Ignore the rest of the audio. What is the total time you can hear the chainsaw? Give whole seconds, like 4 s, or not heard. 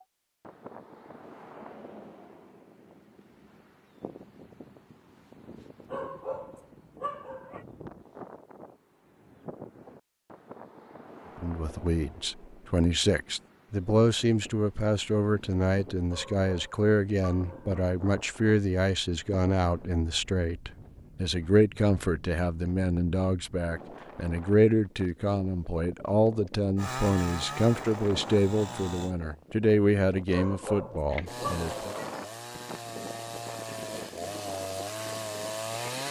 7 s.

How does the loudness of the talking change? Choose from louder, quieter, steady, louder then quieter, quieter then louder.
steady.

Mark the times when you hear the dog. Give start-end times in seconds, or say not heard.
5.9-7.7, 16.1-17.8, 30.3-32.2.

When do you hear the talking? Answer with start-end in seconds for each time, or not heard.
11.3-31.9.